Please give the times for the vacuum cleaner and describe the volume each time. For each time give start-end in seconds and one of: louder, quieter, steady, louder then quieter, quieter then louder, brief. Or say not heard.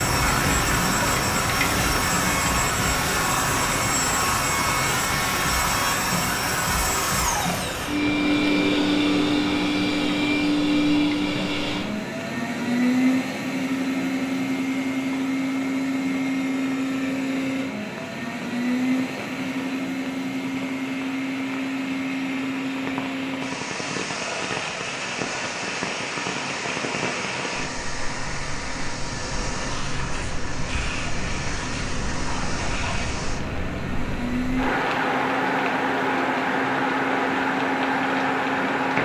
0.0-39.0 quieter.